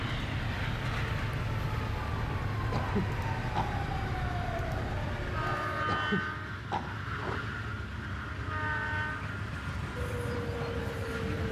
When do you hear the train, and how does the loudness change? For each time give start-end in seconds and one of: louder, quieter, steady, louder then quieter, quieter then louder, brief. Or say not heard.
0.0-11.4 steady.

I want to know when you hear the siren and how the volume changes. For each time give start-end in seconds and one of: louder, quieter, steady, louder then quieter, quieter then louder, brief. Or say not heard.
0.0-5.8 steady
9.9-11.4 brief.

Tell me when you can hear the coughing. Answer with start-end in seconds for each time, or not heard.
2.7-3.8, 5.8-7.4.